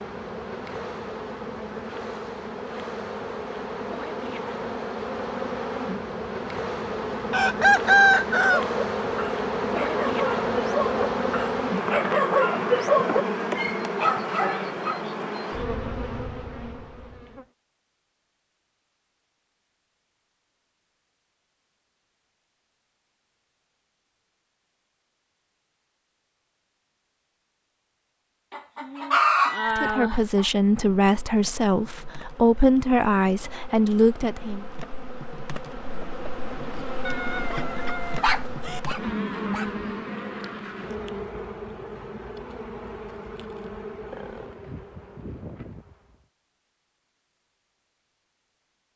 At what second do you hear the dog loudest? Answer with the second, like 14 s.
13 s.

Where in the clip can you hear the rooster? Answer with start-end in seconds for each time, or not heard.
7.3-8.6, 28.5-30.4, 37.0-38.8.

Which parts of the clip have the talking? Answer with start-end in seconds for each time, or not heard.
29.8-34.6.